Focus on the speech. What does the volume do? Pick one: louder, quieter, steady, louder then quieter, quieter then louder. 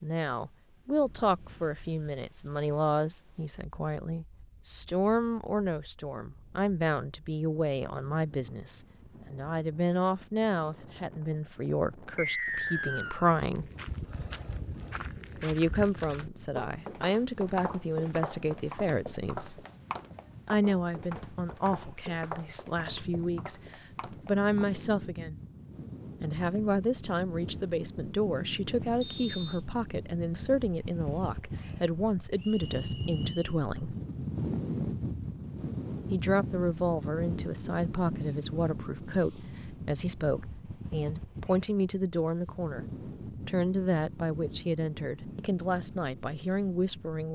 steady.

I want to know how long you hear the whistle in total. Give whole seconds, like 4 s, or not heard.
3 s.